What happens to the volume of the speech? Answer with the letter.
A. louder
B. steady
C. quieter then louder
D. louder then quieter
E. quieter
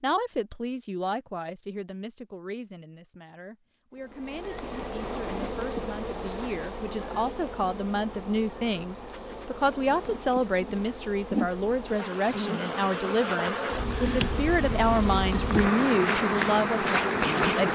A.